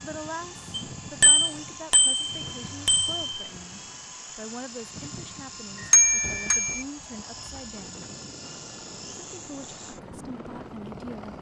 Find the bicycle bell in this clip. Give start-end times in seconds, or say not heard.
0.7-3.5, 5.9-6.8.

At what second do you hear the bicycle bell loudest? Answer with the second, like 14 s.
6 s.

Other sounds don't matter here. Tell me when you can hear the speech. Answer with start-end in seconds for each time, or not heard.
0.0-8.1, 9.3-11.3.